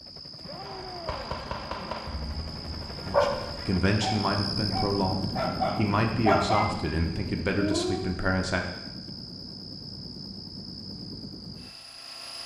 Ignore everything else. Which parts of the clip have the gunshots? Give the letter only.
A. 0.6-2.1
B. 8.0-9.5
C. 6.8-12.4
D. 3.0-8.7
A.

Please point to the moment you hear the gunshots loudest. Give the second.
2 s.